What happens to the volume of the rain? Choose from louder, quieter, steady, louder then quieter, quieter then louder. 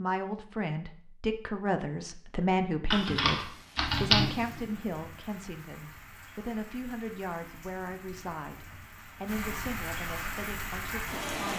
louder.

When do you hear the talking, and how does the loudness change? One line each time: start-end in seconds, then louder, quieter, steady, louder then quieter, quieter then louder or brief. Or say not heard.
0.0-11.5 quieter.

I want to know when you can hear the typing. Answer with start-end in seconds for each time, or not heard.
2.9-4.6.